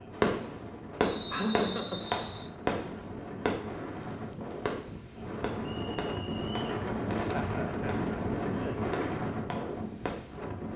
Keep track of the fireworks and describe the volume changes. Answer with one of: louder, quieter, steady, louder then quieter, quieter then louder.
quieter.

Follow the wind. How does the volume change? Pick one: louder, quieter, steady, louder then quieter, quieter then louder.
louder.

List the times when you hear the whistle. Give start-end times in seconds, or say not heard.
1.1-2.5, 5.7-6.7.